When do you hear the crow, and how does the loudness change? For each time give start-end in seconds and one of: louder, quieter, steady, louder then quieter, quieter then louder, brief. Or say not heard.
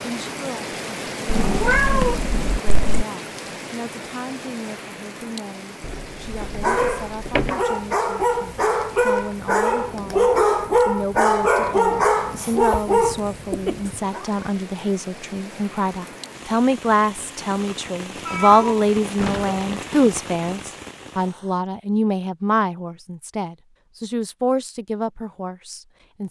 not heard.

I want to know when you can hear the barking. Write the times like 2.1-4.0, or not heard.
6.4-14.2.